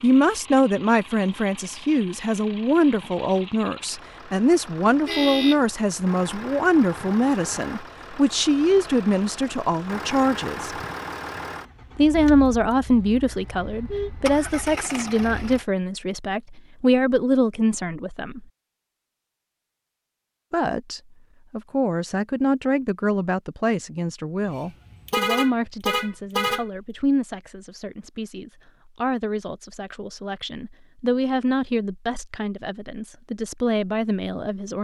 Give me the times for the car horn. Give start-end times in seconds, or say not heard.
5.0-5.6, 13.7-14.1, 25.1-26.6.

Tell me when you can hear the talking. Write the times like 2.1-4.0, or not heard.
0.0-10.8, 11.9-18.4, 20.5-34.7.